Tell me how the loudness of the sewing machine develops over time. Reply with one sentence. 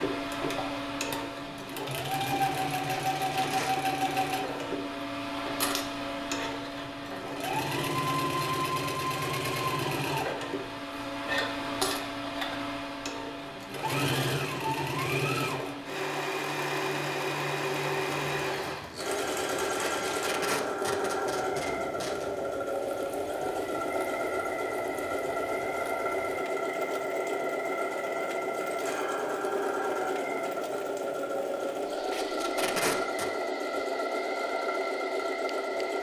The loudness of the sewing machine stays about the same.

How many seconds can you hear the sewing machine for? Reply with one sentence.
The sewing machine can be heard for 36 seconds in total.